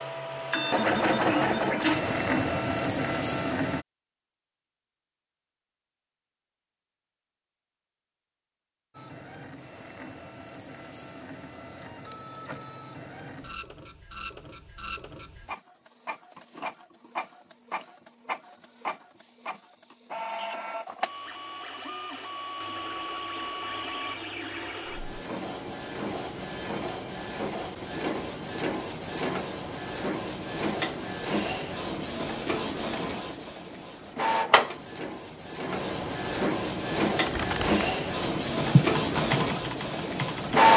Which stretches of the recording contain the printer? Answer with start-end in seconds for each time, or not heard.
0.0-3.9, 8.9-40.7.